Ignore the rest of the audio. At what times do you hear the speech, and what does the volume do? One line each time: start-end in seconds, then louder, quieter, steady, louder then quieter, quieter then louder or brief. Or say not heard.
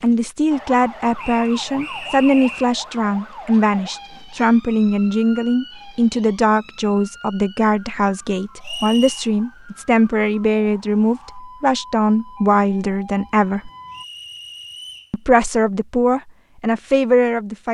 0.0-13.7 steady
15.1-17.6 brief.